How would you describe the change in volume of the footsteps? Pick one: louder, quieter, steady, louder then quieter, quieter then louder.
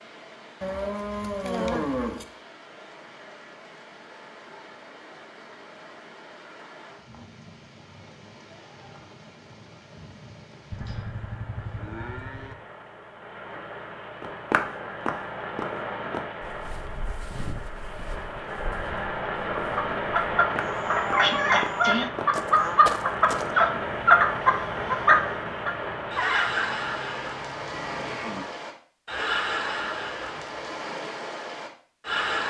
quieter then louder.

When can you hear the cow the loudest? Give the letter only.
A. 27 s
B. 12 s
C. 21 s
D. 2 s
D.